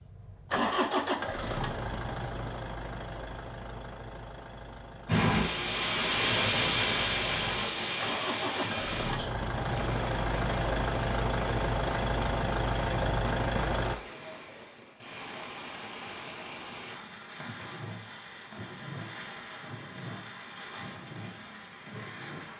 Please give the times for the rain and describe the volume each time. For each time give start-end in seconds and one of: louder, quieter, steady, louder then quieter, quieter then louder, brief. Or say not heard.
5.0-22.5 quieter.